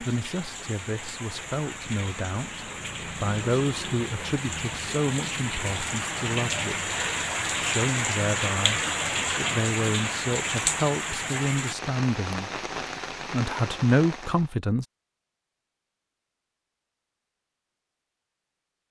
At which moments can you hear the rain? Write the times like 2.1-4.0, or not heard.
0.0-14.6.